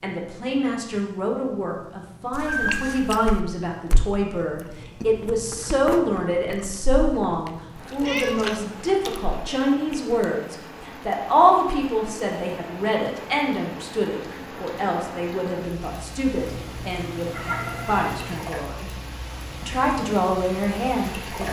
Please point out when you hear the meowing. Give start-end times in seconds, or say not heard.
2.3-3.4, 8.0-8.6, 16.4-18.4.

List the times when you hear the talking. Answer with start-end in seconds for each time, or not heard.
0.0-18.9, 19.6-21.4.